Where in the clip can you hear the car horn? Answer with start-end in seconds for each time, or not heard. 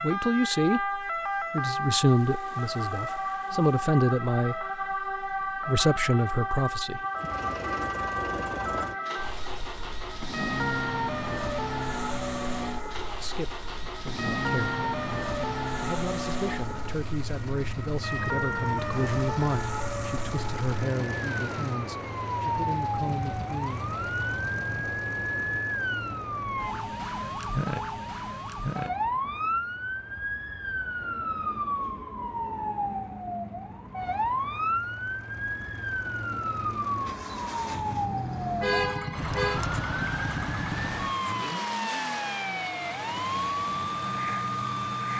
38.6-39.6.